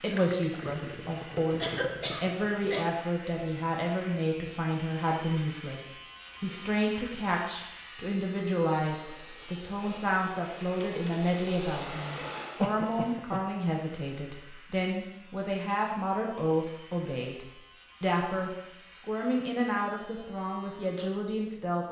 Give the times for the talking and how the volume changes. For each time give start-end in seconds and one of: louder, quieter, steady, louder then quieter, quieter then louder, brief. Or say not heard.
0.0-21.8 steady.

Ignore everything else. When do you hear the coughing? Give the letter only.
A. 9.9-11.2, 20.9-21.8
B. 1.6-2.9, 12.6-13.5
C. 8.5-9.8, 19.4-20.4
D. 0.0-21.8
B.